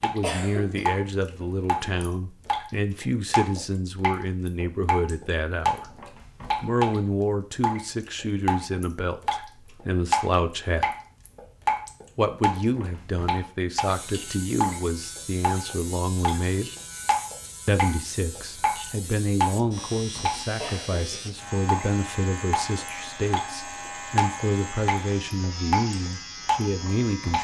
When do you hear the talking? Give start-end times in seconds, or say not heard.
0.0-5.9, 6.6-10.9, 12.2-16.7, 17.6-27.3.